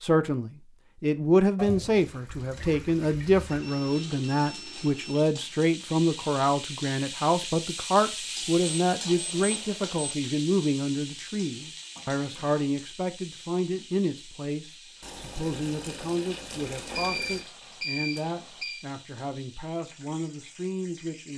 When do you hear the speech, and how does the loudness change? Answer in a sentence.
You can hear the speech from 0.0 to 21.3 s, getting quieter.